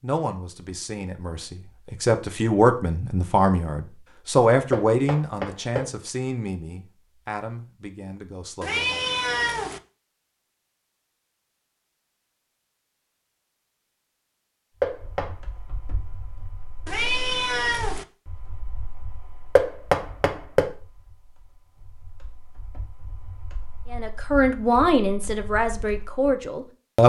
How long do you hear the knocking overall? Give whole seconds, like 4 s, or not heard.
3 s.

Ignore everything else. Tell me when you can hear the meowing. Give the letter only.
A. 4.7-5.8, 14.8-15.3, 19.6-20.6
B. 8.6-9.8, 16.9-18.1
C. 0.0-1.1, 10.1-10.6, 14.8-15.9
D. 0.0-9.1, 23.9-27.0
B.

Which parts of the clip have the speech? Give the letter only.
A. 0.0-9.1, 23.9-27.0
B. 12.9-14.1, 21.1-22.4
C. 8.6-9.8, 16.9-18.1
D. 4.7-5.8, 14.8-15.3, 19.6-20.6
A.